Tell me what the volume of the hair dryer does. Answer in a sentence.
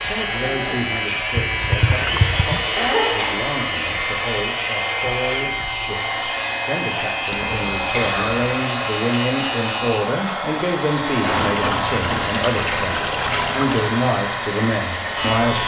The loudness of the hair dryer stays about the same.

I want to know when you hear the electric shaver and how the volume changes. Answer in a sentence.
The electric shaver can be heard from 0.0 to 15.6 s, at a steady volume.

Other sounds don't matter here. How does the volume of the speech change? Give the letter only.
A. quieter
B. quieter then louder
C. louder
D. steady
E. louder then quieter
C.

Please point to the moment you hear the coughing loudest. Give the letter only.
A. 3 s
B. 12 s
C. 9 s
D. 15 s
A.